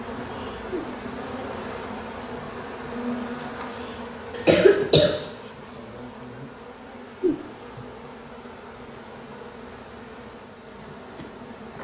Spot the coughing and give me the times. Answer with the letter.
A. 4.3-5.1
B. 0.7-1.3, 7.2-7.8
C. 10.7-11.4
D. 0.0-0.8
A.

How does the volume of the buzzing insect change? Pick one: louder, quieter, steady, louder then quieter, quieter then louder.
quieter.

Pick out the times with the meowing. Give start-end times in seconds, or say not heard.
0.7-1.3, 7.2-7.8.